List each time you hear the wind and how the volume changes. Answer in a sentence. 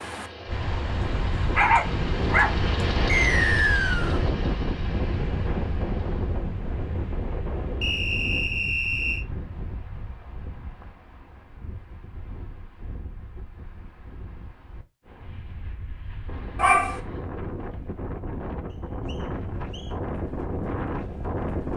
You can hear the wind from 0.0 to 21.7 s, getting quieter then louder.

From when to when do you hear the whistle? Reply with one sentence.
The whistle can be heard from 3.0 to 4.2 s, from 7.8 to 9.2 s and from 18.7 to 19.9 s.